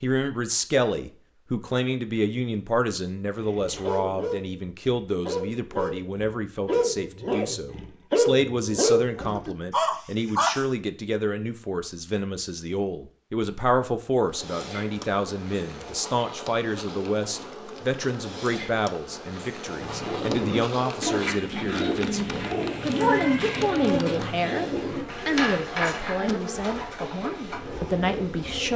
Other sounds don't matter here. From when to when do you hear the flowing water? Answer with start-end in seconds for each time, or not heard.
not heard.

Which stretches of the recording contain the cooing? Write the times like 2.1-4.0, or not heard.
19.8-28.7.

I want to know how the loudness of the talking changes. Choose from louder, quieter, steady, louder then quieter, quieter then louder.
steady.